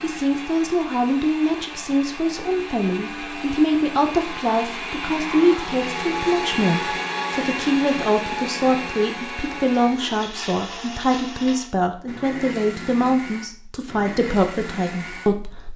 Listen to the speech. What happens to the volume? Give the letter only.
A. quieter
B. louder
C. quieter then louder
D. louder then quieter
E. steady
E.